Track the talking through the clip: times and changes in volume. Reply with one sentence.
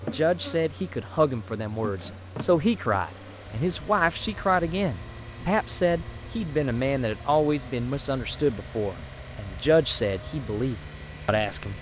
You can hear the talking from 0.0 to 11.7 s, at a steady volume.